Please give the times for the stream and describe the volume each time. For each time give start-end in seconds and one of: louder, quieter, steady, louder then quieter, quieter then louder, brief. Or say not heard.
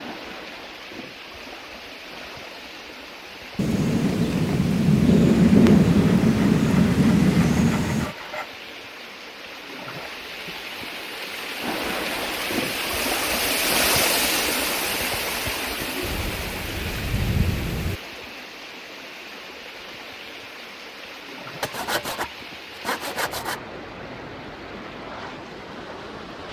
0.0-26.4 louder then quieter.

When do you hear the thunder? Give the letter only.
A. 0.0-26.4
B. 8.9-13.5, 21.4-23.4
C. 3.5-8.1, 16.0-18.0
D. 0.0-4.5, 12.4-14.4
C.